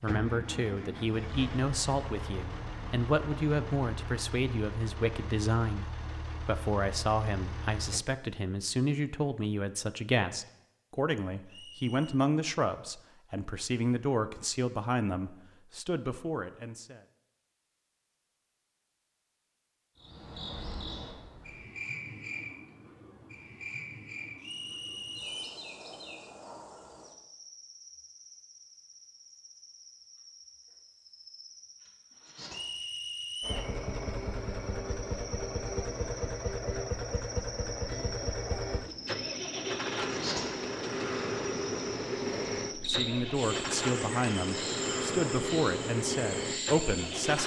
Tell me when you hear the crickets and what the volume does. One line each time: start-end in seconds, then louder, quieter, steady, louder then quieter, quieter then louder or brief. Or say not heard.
19.9-47.4 quieter then louder.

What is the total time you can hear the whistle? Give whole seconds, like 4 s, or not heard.
3 s.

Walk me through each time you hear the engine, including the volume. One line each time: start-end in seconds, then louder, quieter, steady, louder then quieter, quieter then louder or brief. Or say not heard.
0.0-8.1 steady
33.4-47.4 steady.